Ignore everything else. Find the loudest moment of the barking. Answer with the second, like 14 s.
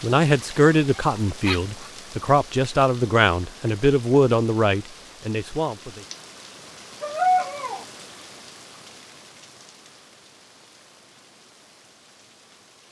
7 s.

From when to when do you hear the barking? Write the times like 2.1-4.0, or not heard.
0.9-1.9, 7.0-7.8.